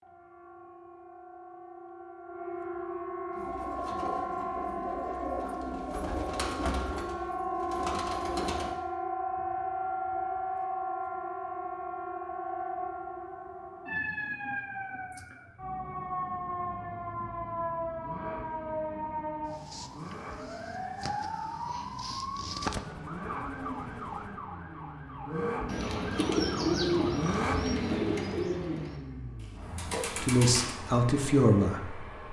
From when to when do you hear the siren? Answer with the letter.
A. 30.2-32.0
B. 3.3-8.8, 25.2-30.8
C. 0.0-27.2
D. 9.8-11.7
C.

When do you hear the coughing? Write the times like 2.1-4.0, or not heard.
not heard.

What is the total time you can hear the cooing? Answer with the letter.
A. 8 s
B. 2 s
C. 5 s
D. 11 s
D.